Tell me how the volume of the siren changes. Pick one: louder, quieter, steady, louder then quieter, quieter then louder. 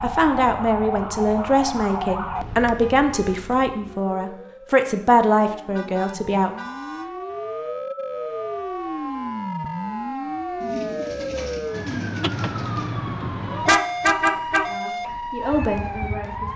quieter then louder.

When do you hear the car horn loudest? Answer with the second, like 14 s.
14 s.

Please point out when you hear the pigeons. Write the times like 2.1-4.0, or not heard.
10.6-12.9.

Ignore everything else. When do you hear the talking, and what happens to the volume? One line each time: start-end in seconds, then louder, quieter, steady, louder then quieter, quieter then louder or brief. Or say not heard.
0.0-6.5 steady
14.7-16.5 brief.